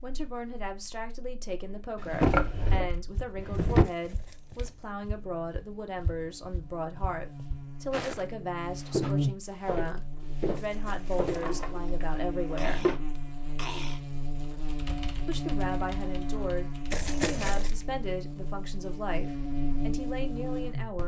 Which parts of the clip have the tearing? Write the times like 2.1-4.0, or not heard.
3.6-4.9, 10.6-11.4, 16.9-17.8.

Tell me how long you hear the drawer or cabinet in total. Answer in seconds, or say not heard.
4 s.